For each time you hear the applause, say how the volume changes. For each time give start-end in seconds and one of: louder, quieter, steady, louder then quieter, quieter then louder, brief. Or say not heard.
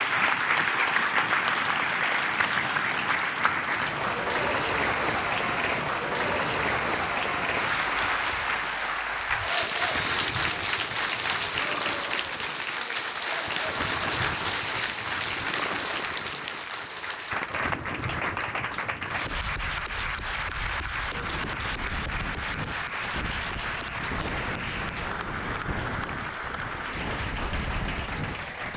0.0-28.7 quieter.